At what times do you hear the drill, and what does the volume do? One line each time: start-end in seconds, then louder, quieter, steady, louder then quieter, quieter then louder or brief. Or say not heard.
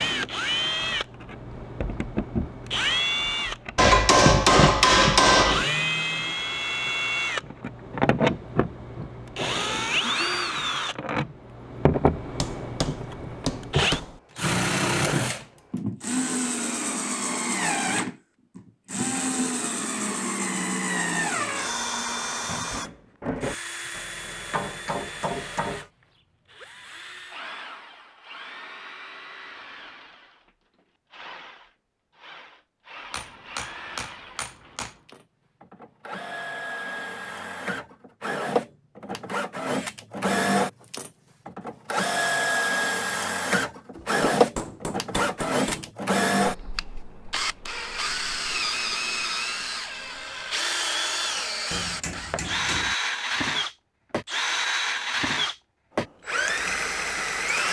0.0-57.6 quieter then louder.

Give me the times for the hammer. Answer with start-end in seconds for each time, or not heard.
3.8-5.7, 12.4-14.2, 23.9-25.9, 33.1-35.0, 44.0-45.9, 51.7-53.0.